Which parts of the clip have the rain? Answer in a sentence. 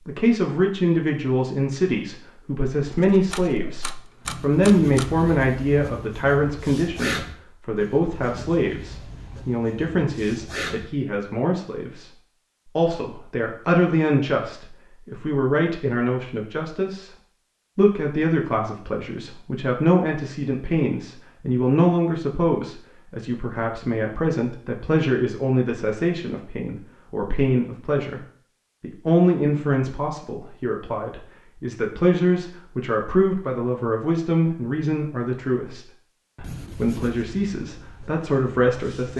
You can't hear the rain here.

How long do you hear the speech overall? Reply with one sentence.
You can hear the speech for 38 seconds altogether.